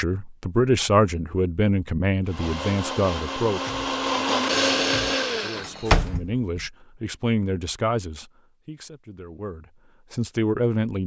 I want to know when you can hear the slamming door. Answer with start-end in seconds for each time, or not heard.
5.6-6.7.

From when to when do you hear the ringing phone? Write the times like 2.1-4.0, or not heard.
not heard.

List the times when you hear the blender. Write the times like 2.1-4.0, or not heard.
2.2-6.1.